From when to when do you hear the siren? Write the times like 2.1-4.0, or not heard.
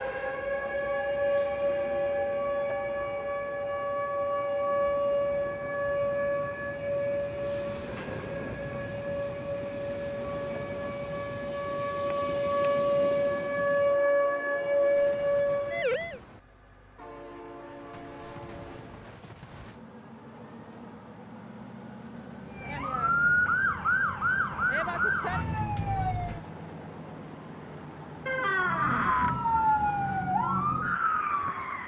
0.0-16.2, 22.5-26.4, 28.6-31.8.